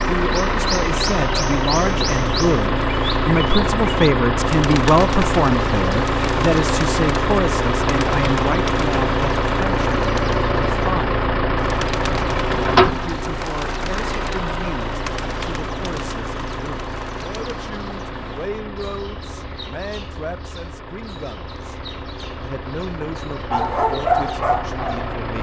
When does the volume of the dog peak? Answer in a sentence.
The volume of the dog peaks at 24 seconds.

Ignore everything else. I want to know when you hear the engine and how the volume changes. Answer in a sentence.
The engine can be heard from 0.0 to 25.3 s, getting quieter.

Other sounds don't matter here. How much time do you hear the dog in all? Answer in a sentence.
The dog can be heard for 2 seconds in total.